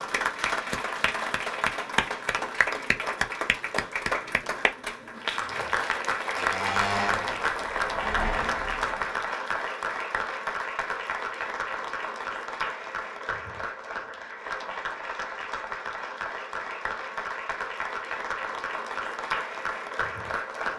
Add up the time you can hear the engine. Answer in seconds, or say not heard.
3 s.